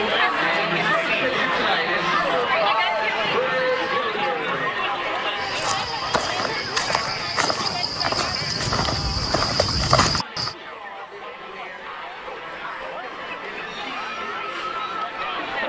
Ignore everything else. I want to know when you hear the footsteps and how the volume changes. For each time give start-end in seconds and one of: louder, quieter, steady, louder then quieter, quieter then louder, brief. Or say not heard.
5.3-10.6 louder.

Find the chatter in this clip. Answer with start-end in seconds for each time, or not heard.
0.0-15.6.